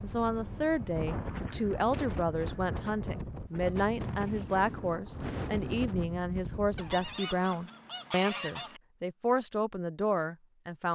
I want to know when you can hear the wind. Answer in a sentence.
The wind can be heard from 0.0 to 7.2 s.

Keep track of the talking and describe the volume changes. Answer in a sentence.
The loudness of the talking stays about the same.